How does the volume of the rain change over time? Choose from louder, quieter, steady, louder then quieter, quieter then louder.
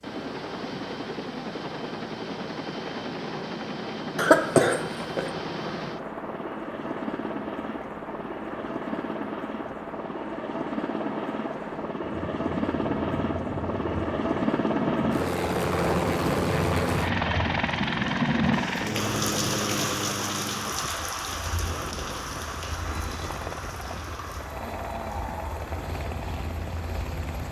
louder then quieter.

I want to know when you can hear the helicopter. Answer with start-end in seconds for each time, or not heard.
0.0-27.4.